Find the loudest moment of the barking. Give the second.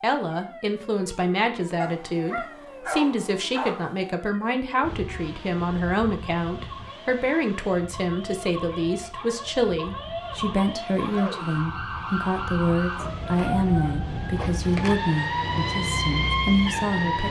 3 s.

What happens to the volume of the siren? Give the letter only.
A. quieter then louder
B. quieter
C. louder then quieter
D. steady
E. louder
E.